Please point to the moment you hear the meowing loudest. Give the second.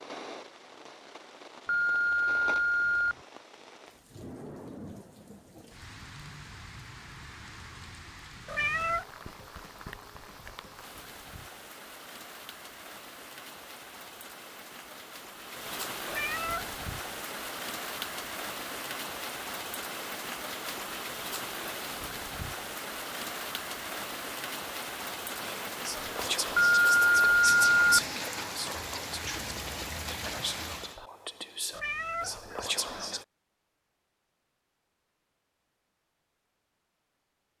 9 s.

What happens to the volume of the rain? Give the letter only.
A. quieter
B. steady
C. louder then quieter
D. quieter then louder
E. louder
E.